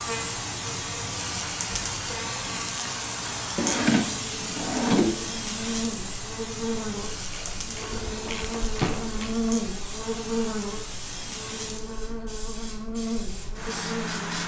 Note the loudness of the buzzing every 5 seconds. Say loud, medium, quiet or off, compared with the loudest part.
medium, loud, loud.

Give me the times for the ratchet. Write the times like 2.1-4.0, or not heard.
7.2-9.4.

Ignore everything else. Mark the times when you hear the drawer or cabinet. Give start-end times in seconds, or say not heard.
3.5-5.2, 7.8-9.1.